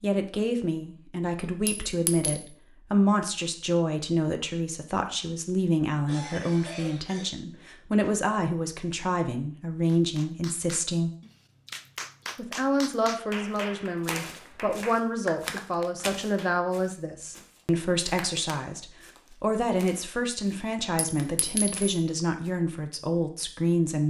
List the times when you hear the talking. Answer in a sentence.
You can hear the talking from 0.0 to 11.1 s and from 12.3 to 24.0 s.